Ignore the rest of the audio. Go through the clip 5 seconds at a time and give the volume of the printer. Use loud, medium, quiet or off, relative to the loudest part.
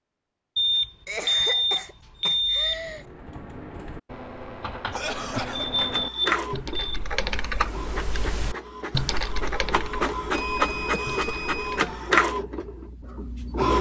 off, medium, loud.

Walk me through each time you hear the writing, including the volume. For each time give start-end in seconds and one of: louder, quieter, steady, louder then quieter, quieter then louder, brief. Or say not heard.
not heard.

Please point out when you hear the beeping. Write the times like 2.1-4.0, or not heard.
0.6-3.0, 5.5-7.0, 10.3-11.8.